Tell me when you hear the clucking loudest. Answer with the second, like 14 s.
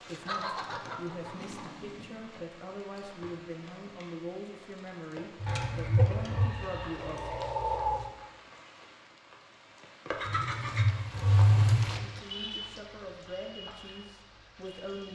8 s.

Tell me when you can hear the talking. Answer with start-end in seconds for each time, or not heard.
0.0-7.3, 11.9-15.1.